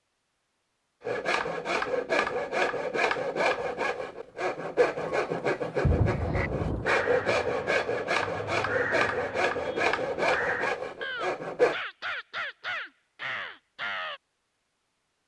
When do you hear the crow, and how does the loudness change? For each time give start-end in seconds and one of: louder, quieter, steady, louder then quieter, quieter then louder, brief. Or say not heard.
6.0-14.2 steady.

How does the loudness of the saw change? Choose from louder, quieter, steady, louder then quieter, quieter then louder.
steady.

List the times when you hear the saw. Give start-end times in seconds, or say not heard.
1.0-11.8.